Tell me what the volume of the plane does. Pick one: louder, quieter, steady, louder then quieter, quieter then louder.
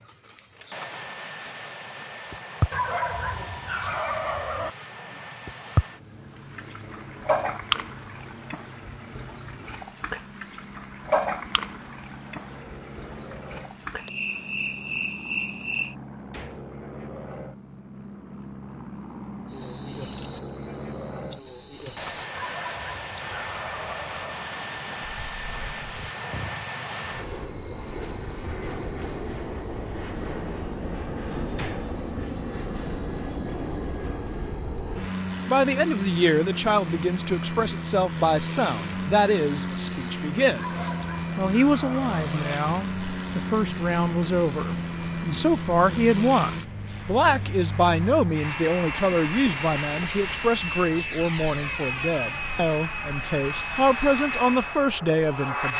louder.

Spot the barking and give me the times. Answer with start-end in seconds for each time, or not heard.
2.7-4.7, 22.3-24.4, 40.5-42.6.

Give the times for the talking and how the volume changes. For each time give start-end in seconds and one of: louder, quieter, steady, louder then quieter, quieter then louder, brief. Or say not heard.
35.5-55.7 steady.